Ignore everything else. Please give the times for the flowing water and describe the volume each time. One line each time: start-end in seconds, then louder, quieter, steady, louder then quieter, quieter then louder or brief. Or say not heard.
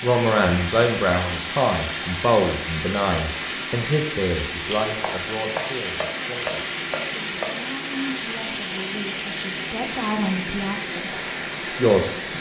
0.0-12.3 steady.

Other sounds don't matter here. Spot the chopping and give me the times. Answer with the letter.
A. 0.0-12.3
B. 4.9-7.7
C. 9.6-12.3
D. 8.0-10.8
B.